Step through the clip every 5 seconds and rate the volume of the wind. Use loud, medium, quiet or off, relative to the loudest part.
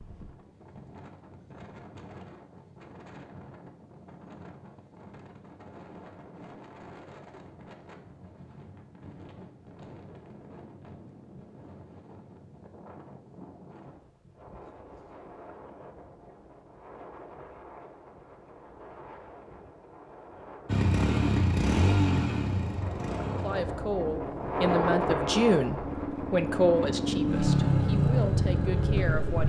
quiet, quiet, quiet, quiet, loud, loud.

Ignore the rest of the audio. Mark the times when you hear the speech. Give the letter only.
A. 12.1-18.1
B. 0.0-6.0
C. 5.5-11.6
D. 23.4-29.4
D.